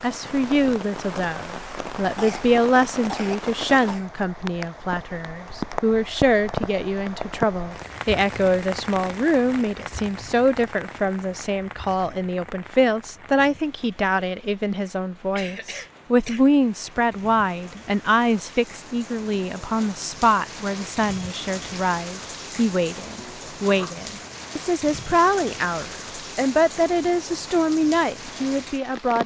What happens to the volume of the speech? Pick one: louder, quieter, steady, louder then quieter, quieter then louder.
steady.